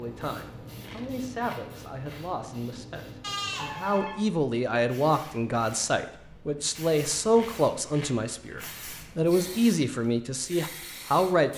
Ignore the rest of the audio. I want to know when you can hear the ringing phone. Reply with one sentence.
You can hear the ringing phone from 3.2 to 4.2 s.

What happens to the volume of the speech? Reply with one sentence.
The loudness of the speech goes up.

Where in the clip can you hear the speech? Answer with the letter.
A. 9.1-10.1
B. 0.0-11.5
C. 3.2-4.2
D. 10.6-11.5
B.